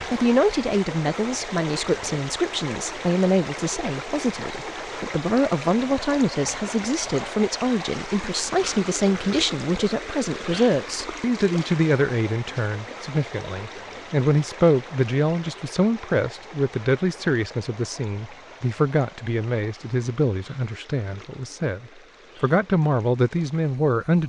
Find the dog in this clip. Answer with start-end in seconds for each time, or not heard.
not heard.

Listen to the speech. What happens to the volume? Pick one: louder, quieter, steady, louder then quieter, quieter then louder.
steady.